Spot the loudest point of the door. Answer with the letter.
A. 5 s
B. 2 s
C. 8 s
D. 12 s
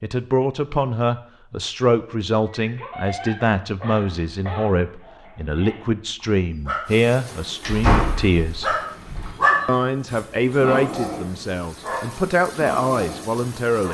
C.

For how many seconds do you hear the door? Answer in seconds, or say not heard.
2 s.